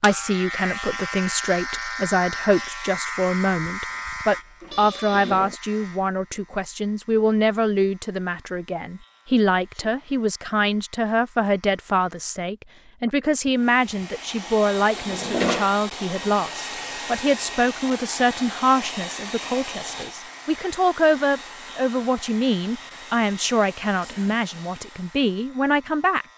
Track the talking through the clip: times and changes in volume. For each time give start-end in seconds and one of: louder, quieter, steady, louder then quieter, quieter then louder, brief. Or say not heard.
0.0-26.2 steady.